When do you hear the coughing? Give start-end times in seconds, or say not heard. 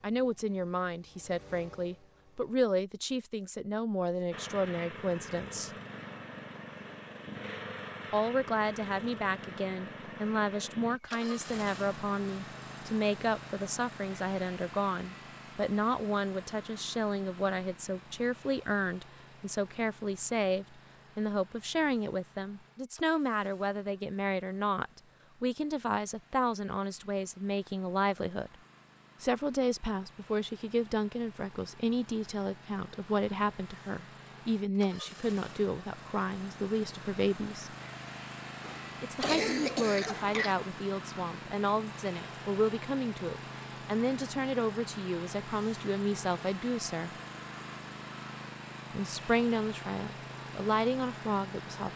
38.6-40.5.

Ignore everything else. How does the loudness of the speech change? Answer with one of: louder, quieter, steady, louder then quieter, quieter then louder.
steady.